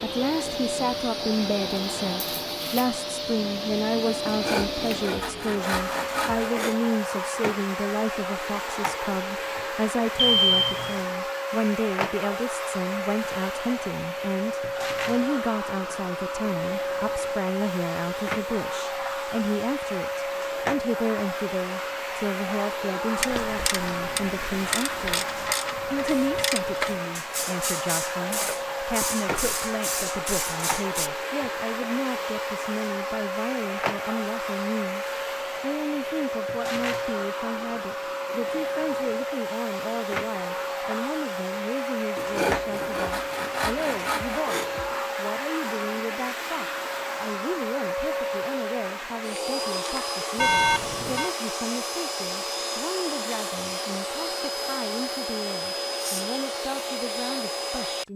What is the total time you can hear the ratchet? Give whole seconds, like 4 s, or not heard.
8 s.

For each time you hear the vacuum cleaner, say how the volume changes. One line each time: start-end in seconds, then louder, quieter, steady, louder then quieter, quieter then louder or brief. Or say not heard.
0.0-58.1 steady.